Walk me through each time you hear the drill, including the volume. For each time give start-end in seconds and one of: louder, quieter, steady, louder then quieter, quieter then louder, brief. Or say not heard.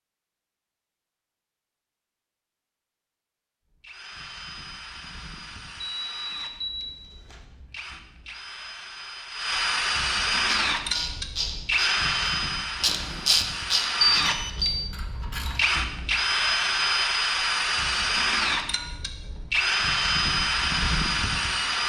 3.7-21.8 louder.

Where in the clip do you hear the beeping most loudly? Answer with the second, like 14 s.
14 s.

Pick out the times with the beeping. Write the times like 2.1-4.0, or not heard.
5.8-7.4, 14.0-14.9.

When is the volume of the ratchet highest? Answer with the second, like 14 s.
13 s.